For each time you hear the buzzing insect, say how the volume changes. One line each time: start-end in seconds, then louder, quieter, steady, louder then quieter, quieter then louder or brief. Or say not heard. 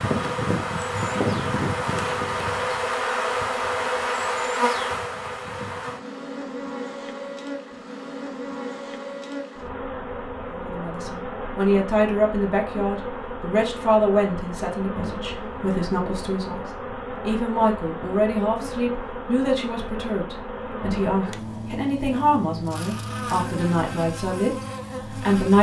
0.0-25.5 quieter.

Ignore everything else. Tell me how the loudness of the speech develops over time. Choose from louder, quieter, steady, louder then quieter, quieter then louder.
steady.